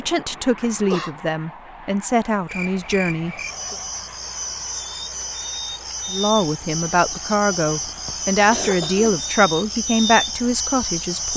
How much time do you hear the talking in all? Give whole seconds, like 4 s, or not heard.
9 s.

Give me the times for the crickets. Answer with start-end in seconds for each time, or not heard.
2.5-11.3.